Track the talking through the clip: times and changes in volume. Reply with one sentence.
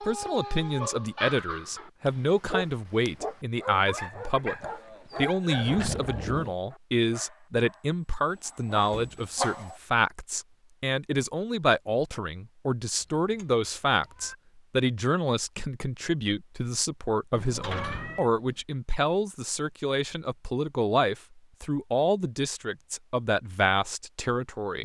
The talking can be heard from 0.0 to 24.8 s, at a steady volume.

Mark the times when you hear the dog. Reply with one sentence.
You can hear the dog from 0.0 to 9.8 s.